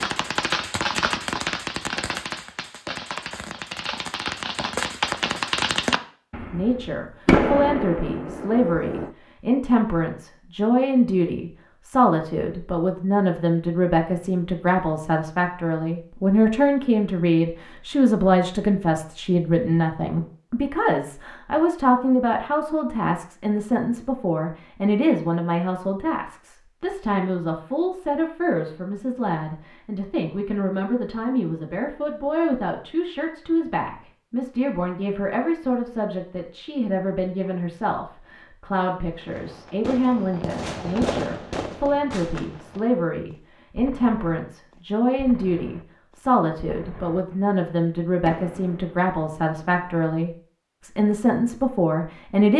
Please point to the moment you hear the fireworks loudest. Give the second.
7 s.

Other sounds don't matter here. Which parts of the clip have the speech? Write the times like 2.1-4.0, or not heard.
6.5-52.5.